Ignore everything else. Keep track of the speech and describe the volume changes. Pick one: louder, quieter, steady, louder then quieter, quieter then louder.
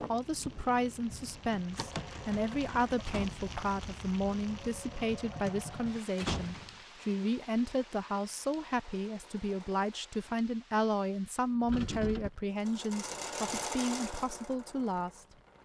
steady.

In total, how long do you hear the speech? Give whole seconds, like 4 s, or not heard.
15 s.